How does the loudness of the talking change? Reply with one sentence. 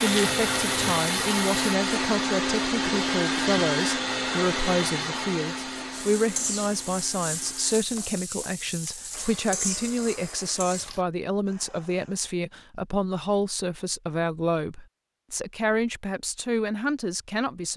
The loudness of the talking stays about the same.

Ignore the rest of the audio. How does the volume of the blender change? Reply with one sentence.
The loudness of the blender goes down.